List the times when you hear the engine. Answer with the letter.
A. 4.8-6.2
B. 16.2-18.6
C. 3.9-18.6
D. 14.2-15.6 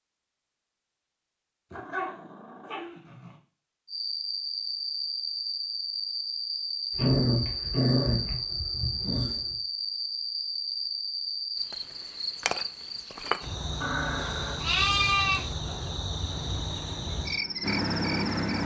B.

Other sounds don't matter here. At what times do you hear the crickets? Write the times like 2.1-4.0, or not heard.
3.9-18.6.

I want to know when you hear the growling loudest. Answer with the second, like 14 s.
7 s.